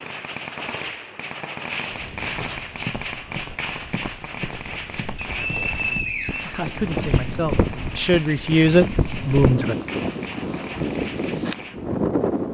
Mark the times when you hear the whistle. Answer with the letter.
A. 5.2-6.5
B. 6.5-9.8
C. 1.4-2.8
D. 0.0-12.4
A.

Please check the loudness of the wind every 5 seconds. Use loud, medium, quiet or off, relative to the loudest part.
quiet, loud, loud.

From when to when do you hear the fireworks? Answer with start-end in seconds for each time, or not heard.
0.0-11.9.